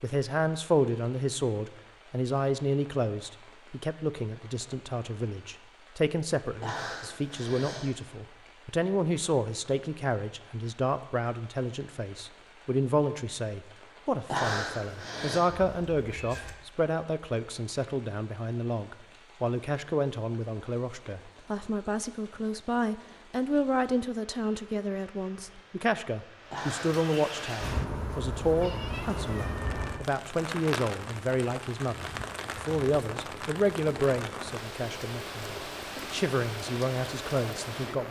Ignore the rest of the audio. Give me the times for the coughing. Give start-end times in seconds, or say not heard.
6.6-7.9, 14.3-15.4, 26.5-27.8.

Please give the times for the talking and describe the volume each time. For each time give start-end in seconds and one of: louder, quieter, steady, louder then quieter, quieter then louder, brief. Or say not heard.
0.0-38.0 steady.